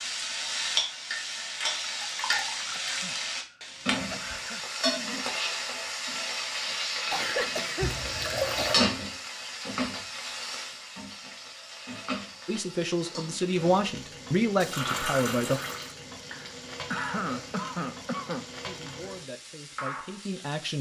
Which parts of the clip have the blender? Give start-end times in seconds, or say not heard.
not heard.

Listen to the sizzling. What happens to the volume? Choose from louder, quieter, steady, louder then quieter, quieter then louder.
quieter.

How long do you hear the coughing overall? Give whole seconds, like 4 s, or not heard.
6 s.